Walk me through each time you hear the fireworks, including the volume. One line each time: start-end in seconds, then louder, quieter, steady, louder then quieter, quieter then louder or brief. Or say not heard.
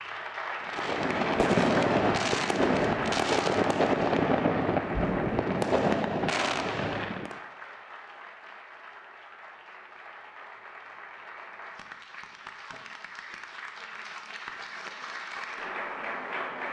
0.6-7.3 steady.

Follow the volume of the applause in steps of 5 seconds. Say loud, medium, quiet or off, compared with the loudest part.
loud, medium, medium, loud.